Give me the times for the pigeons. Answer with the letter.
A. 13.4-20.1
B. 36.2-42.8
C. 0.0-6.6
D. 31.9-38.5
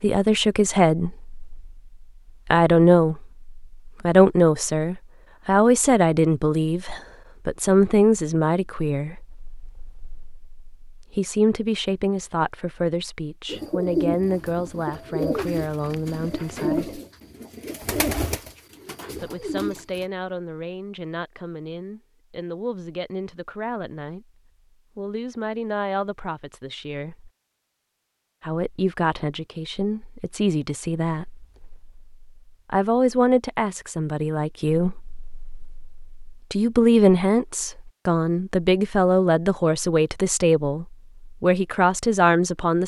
A.